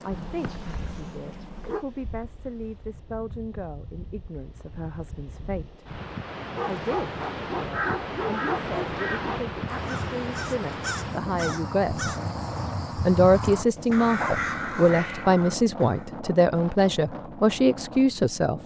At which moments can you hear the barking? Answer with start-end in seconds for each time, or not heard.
0.1-1.9, 6.5-9.4, 13.8-14.5.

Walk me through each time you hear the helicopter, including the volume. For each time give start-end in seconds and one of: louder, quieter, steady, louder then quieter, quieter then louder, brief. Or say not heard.
not heard.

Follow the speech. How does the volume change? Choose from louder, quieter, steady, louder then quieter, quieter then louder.
louder.